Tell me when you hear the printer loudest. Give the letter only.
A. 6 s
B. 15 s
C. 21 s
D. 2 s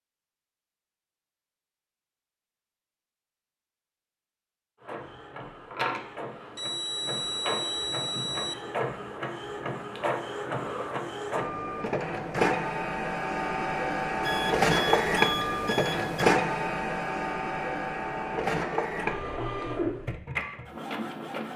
B.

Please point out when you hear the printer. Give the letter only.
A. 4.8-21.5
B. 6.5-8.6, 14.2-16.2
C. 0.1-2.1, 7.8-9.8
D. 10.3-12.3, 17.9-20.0
A.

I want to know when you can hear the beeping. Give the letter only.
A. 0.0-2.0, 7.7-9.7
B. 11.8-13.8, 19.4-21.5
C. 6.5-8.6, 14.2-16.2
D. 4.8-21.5
C.